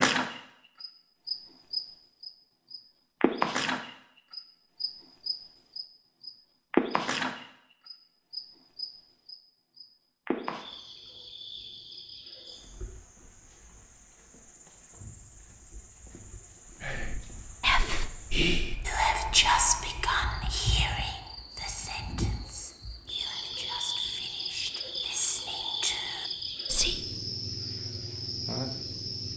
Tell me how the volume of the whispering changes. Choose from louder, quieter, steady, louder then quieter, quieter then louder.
quieter then louder.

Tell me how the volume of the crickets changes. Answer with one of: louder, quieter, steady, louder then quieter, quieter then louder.
quieter then louder.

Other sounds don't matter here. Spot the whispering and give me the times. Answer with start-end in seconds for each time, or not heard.
16.8-27.0.